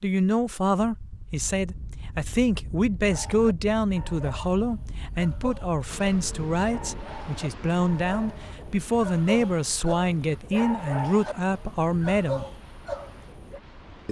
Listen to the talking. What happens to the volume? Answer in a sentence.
The volume of the talking stays about the same.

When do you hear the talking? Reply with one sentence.
You can hear the talking from 0.0 to 12.4 s.